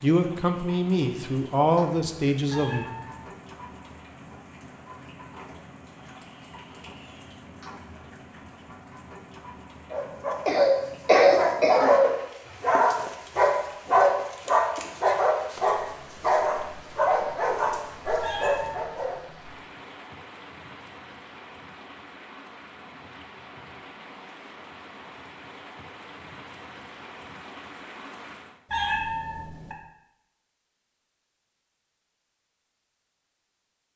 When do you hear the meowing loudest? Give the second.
29 s.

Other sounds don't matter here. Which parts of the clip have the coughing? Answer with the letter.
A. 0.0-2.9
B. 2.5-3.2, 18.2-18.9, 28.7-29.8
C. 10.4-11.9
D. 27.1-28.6
C.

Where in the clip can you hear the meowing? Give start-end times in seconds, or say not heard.
2.5-3.2, 18.2-18.9, 28.7-29.8.